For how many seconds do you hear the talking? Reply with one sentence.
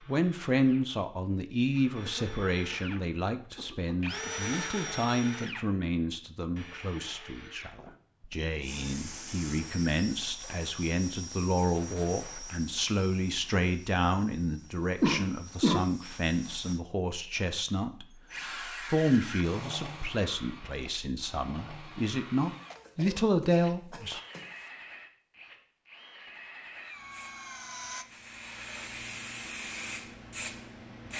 The talking can be heard for 24 seconds in total.